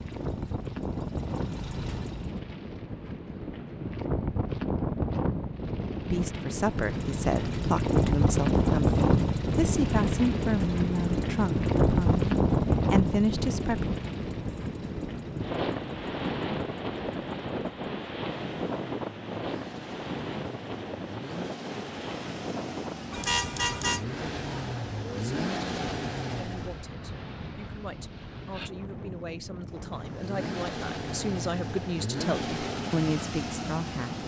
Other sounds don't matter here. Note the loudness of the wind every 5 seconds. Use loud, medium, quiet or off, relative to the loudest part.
medium, loud, loud, medium, medium, quiet, quiet.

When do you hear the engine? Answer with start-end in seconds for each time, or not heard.
0.0-2.4, 6.5-26.9, 29.9-34.2.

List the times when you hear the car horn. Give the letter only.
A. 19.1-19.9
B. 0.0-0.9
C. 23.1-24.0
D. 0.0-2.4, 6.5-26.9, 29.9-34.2
C.